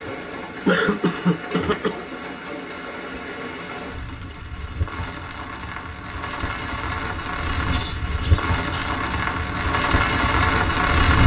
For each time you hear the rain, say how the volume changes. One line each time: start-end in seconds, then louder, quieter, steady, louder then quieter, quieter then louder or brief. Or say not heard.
0.0-11.2 louder.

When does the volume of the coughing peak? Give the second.
1 s.